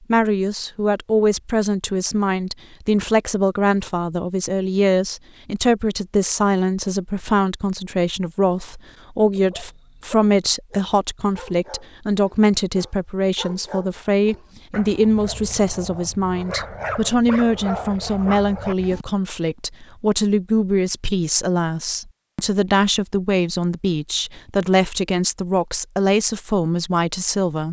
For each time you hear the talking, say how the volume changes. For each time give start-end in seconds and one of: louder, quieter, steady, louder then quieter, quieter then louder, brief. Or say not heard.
0.1-27.6 steady.